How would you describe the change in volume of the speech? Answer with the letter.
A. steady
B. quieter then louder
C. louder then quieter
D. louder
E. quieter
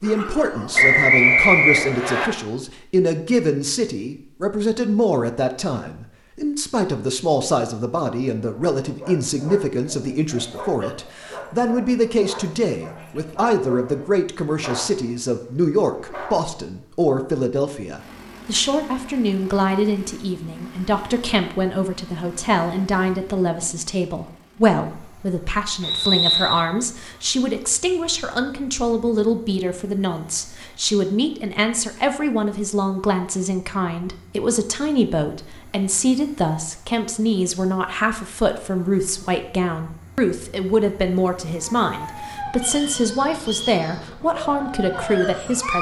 A.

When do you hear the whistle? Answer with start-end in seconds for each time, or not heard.
0.8-2.3, 25.8-26.6, 42.6-43.8.